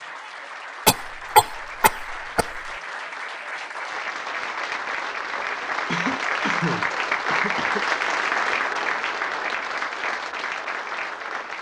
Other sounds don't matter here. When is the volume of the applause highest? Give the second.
8 s.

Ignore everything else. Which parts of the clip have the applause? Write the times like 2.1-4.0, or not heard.
0.0-11.5.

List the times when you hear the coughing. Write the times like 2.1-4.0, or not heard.
0.8-2.7, 5.8-7.8.